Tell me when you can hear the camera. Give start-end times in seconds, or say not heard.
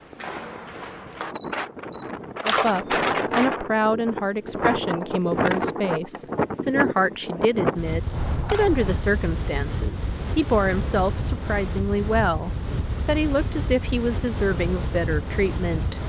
1.4-2.9, 8.1-9.1.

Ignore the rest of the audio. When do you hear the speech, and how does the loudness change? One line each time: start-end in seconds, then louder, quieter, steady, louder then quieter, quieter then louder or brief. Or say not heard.
2.4-16.0 steady.